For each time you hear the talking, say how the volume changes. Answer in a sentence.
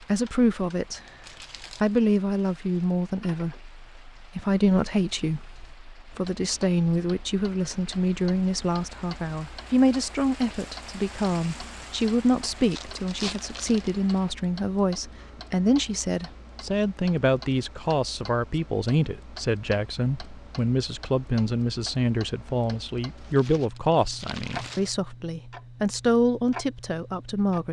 The talking can be heard briefly from 0.1 to 1.0 s; and from 1.8 to 27.6 s, at a steady volume.